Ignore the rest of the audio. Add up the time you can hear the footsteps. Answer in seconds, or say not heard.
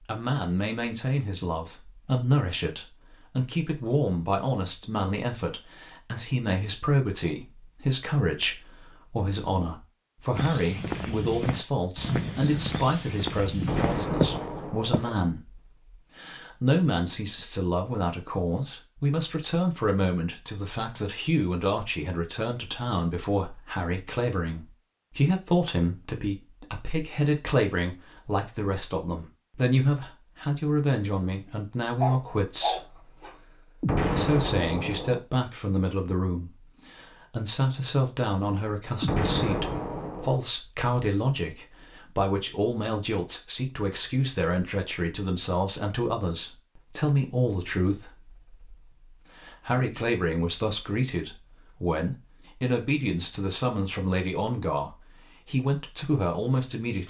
5 s.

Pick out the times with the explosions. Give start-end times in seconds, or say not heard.
13.6-15.0, 33.8-35.2, 39.0-40.4.